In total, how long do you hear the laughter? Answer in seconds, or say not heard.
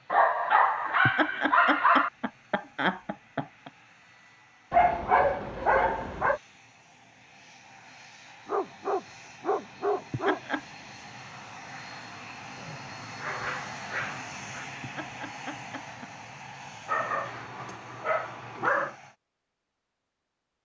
5 s.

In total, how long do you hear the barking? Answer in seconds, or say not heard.
10 s.